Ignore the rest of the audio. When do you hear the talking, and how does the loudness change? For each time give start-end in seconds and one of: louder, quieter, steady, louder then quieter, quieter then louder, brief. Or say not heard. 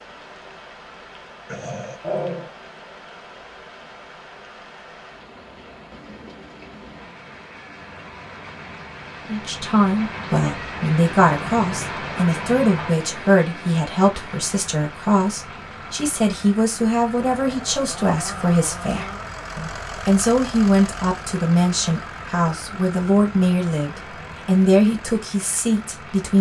9.2-26.3 steady.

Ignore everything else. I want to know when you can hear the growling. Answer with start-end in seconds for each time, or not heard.
1.4-2.5, 17.1-19.3.